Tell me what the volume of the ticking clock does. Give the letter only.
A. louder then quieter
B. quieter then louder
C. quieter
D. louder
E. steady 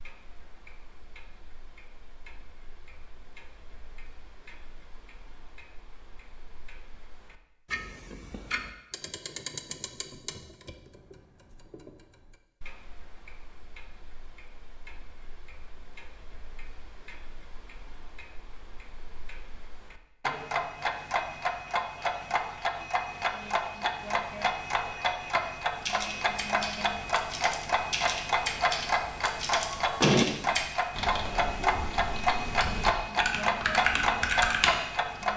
D.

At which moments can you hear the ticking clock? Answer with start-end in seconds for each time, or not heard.
0.0-35.3.